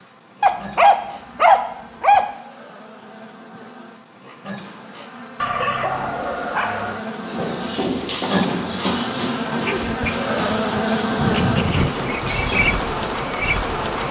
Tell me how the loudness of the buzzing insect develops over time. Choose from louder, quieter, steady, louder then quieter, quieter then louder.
louder.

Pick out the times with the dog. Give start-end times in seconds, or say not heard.
0.4-2.2, 5.3-7.0, 9.7-11.9.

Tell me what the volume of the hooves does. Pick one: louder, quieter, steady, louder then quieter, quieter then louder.
quieter.